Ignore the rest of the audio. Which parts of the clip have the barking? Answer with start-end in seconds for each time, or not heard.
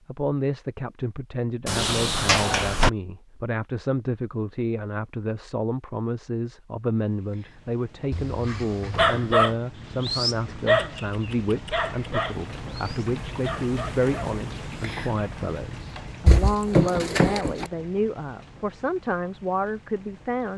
8.1-14.4.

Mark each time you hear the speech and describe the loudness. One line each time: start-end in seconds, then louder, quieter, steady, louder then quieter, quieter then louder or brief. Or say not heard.
0.1-20.5 steady.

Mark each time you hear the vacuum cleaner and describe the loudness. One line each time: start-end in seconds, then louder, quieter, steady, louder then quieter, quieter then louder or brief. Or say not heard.
not heard.